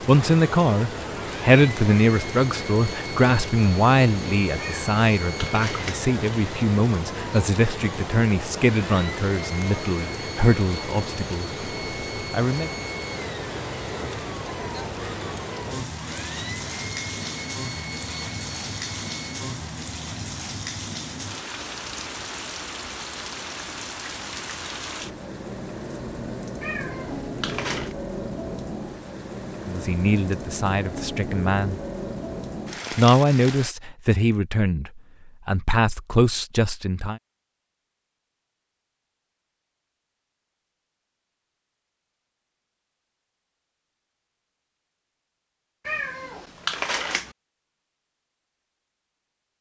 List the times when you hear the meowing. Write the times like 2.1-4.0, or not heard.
4.5-6.0, 26.6-27.9, 45.9-47.4.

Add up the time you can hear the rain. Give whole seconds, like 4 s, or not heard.
34 s.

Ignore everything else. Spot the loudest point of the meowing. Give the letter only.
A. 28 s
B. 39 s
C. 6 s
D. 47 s
D.